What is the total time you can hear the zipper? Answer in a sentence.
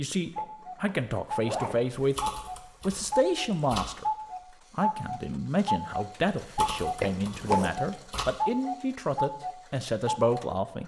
You can hear the zipper for 2 seconds altogether.